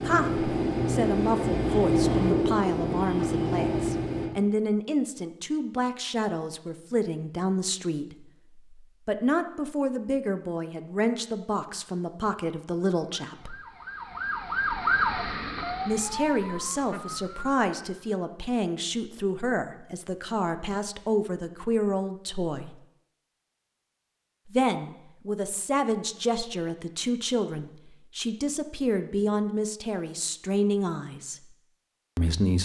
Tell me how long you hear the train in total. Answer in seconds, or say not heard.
4 s.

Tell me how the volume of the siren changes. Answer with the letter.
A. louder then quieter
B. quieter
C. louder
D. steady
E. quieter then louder
A.